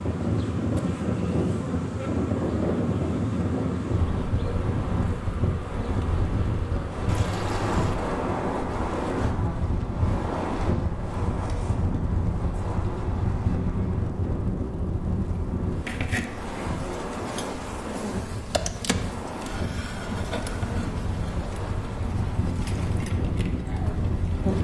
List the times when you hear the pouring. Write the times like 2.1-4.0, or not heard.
7.0-8.0.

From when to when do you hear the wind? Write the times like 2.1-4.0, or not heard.
0.0-24.5.